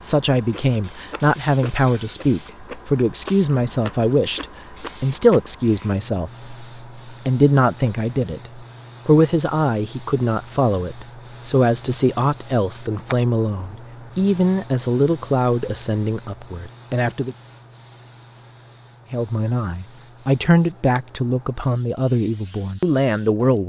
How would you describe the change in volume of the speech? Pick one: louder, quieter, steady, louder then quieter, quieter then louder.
steady.